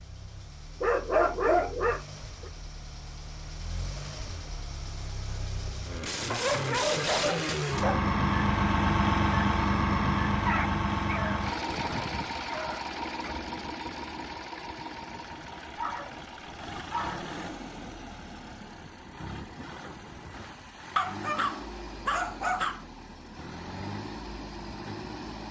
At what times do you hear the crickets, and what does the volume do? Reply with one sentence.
The crickets can't be heard in this clip.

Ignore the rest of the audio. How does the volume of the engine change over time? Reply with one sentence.
The volume of the engine goes up, then down.